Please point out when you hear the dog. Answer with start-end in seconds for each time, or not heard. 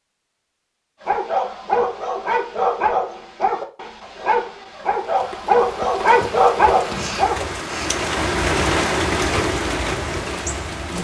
1.1-7.6.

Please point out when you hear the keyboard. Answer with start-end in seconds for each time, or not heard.
not heard.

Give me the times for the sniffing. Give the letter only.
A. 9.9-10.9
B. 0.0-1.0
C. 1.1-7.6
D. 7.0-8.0
D.